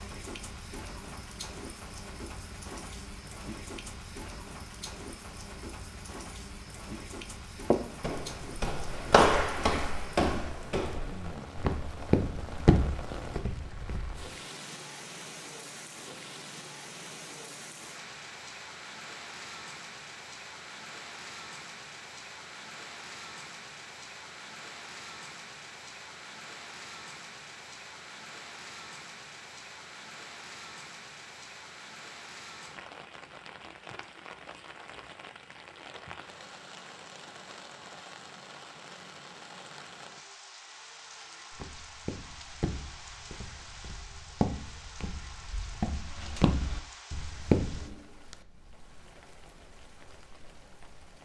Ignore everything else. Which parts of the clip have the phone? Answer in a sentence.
The phone can't be heard in this clip.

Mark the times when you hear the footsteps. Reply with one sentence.
The footsteps can be heard from 7.7 to 14.2 s and from 41.1 to 48.0 s.